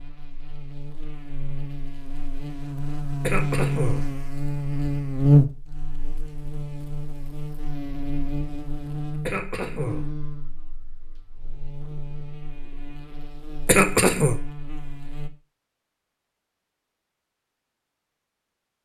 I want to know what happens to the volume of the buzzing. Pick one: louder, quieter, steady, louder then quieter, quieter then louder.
louder then quieter.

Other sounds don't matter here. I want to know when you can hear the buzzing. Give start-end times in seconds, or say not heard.
0.0-15.3.